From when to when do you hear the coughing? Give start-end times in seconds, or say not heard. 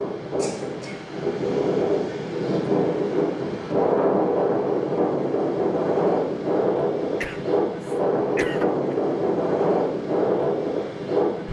0.3-1.1, 7.2-8.9.